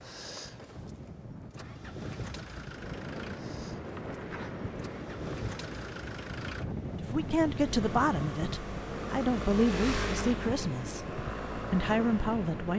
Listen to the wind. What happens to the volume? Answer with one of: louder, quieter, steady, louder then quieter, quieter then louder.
louder.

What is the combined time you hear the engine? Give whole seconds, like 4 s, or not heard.
13 s.